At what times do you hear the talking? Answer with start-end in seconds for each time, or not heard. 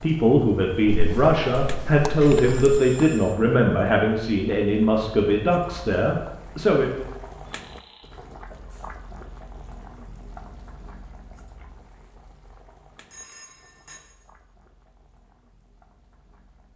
0.0-7.0.